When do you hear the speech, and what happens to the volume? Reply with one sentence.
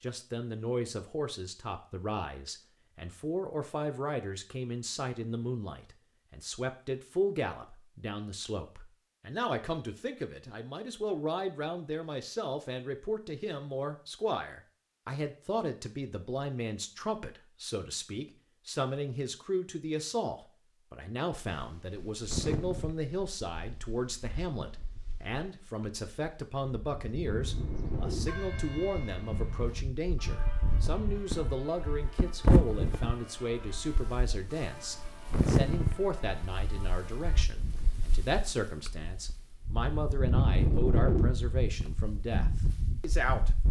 The speech can be heard from 0.0 to 43.5 s, at a steady volume.